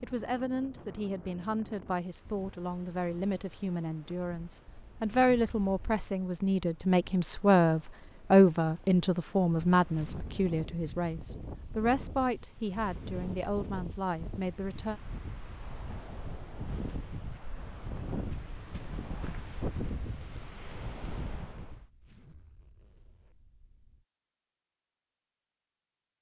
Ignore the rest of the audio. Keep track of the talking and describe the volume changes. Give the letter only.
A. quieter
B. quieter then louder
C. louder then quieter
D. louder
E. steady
C.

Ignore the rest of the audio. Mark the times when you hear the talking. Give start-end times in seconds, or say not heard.
0.0-15.0.